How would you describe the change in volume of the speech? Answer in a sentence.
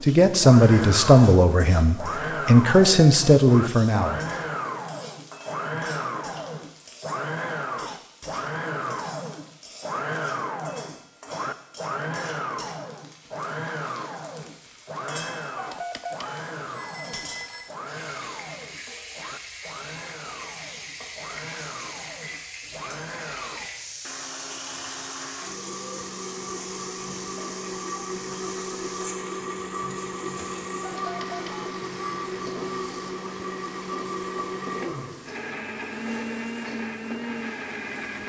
The volume of the speech goes down, then up.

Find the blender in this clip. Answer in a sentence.
The blender can be heard from 0.0 to 38.2 s.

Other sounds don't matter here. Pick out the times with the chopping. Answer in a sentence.
The chopping can't be heard in this clip.